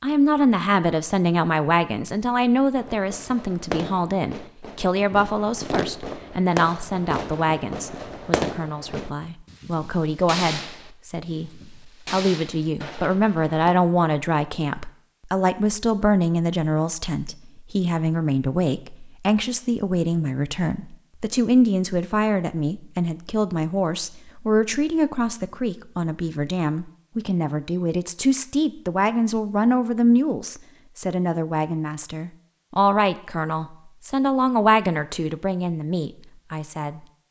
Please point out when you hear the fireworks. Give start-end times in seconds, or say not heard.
2.8-13.8.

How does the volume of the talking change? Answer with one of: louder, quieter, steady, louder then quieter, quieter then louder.
steady.